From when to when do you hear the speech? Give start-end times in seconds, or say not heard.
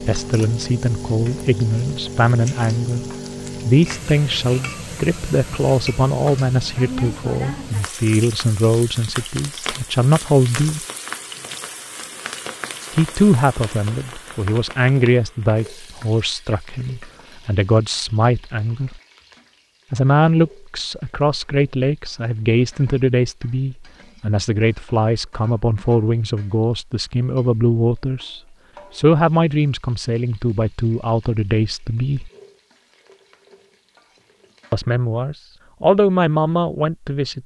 0.0-10.8, 12.9-19.0, 19.9-32.3, 34.7-37.4.